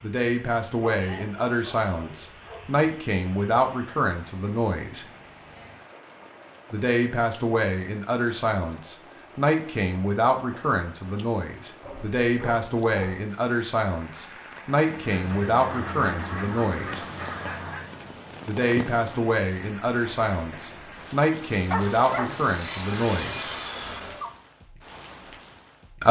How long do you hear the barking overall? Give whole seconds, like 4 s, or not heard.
6 s.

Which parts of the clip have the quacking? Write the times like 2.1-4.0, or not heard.
14.8-18.1.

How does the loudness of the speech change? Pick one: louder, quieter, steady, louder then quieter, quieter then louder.
steady.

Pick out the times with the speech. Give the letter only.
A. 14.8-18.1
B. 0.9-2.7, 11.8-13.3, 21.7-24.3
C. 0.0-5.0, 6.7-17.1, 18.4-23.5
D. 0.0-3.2
C.